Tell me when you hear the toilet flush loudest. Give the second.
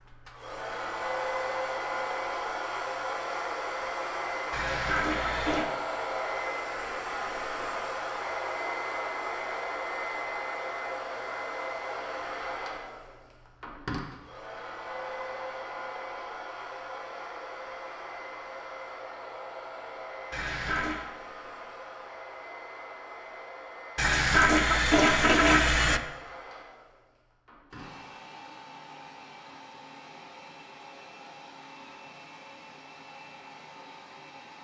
25 s.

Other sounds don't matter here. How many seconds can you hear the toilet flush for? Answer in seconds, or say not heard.
4 s.